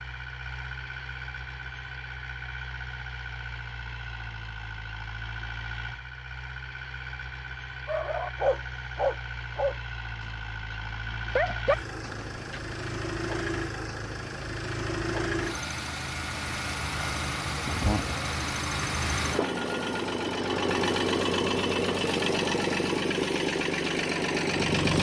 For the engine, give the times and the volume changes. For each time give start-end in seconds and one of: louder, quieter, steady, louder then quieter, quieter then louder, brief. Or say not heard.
0.0-24.9 louder.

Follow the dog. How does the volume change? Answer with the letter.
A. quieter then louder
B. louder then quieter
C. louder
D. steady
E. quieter
A.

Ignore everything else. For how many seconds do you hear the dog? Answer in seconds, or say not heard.
5 s.